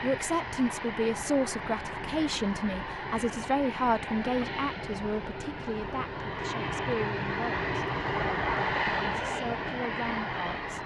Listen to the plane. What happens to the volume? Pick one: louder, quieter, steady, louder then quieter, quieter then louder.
louder.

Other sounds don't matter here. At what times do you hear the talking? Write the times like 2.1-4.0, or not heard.
0.0-7.7, 9.1-10.8.